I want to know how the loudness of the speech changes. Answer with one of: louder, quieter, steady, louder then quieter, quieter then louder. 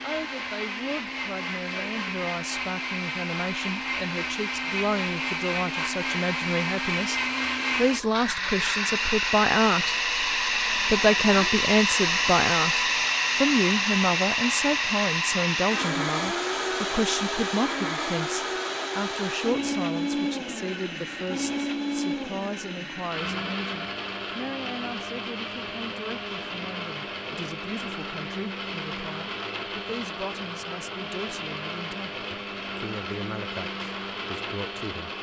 louder then quieter.